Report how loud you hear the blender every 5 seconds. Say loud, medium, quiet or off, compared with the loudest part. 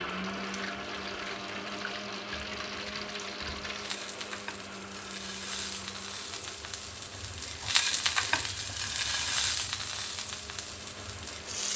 loud, medium, medium.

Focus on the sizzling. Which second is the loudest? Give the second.
8 s.